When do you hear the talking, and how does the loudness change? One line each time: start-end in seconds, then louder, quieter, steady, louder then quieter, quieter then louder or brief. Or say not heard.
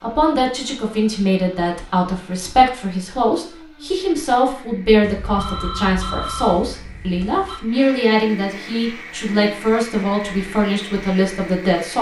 0.0-11.9 steady.